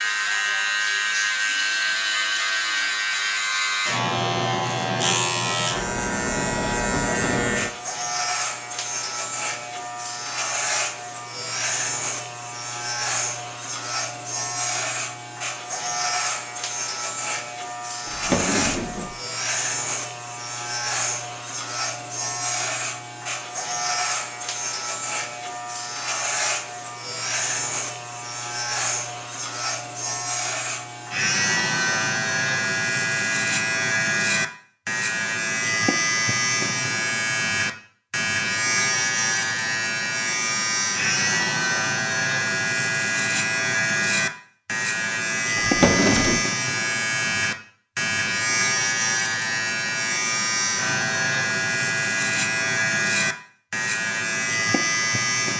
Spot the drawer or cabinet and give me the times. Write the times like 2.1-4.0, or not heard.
18.1-19.1, 45.5-46.4.